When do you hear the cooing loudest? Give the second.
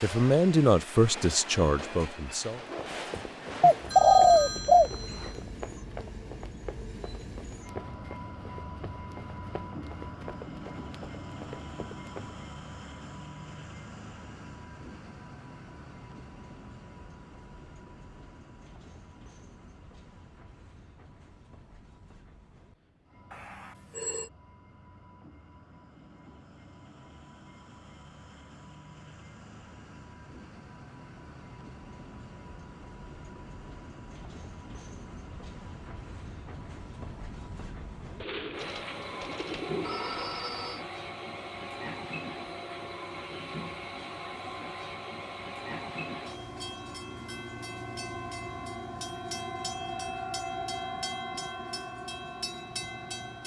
4 s.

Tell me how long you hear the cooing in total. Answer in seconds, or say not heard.
4 s.